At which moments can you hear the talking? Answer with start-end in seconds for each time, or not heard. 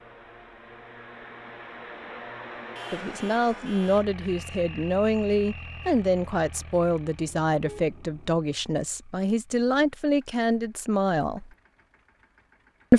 2.9-11.5.